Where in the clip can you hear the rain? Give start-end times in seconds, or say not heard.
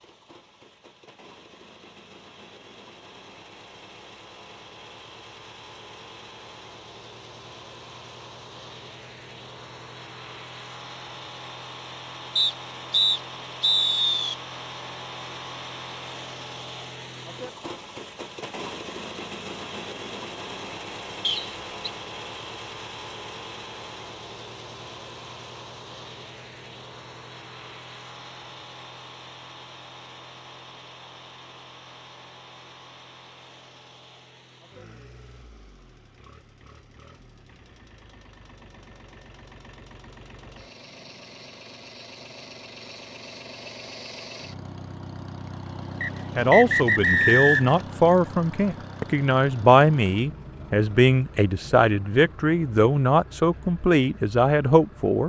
not heard.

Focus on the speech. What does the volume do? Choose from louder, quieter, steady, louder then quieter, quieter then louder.
steady.